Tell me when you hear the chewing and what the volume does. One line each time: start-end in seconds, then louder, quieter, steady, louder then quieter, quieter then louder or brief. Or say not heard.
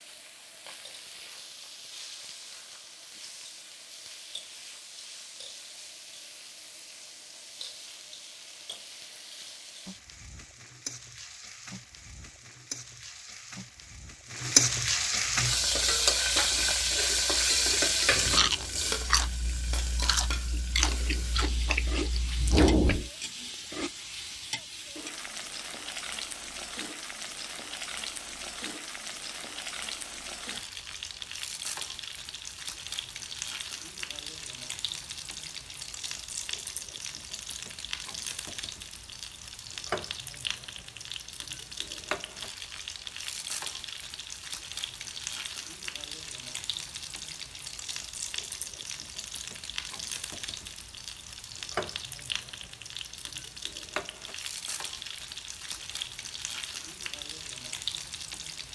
15.3-23.1 louder.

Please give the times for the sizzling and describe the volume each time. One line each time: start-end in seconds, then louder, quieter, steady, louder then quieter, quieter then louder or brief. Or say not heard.
0.0-58.7 louder then quieter.